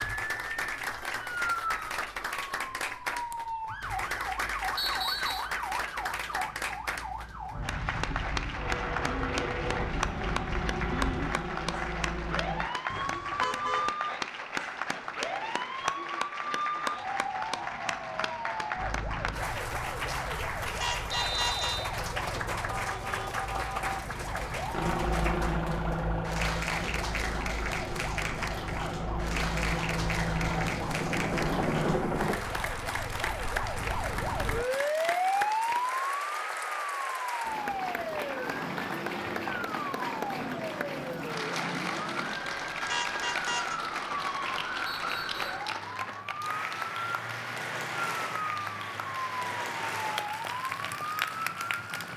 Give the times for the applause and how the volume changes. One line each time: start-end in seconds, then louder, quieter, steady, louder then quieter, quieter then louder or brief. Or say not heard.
0.0-52.1 steady.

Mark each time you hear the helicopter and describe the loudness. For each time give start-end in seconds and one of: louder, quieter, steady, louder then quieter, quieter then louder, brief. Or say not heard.
8.6-12.7 steady
24.7-32.4 quieter then louder.